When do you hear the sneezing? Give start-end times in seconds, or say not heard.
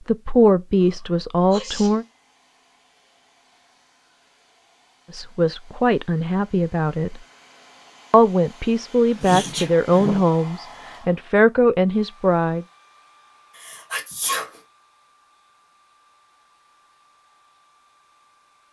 0.8-2.0, 9.2-10.2, 13.6-14.6.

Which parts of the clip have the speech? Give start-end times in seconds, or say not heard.
0.1-2.0, 5.1-7.2, 8.1-12.7.